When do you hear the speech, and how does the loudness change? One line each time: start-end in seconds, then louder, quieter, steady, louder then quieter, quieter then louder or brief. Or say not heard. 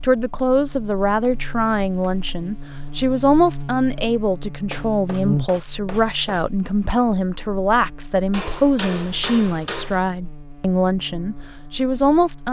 0.0-12.4 steady.